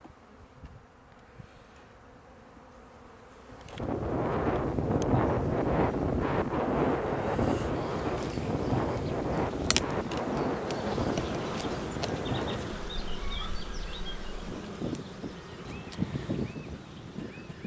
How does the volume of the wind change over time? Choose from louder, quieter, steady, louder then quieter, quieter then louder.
quieter.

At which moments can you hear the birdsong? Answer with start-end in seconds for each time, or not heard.
not heard.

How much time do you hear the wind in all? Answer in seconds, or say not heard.
14 s.